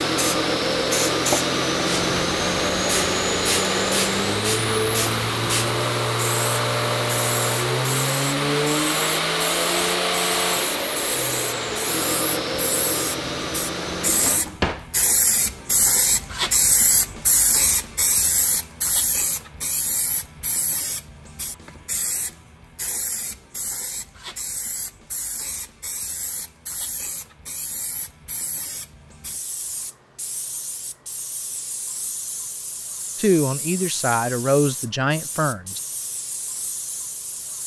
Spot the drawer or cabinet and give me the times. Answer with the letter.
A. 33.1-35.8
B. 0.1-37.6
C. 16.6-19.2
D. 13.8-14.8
D.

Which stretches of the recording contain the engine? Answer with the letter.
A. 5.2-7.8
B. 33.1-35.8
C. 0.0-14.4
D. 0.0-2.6
C.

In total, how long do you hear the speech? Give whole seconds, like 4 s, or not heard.
3 s.